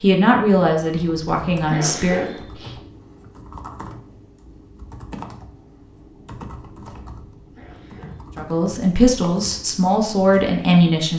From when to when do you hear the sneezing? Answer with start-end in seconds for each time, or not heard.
1.6-2.8, 7.5-8.2.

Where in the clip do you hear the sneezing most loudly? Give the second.
2 s.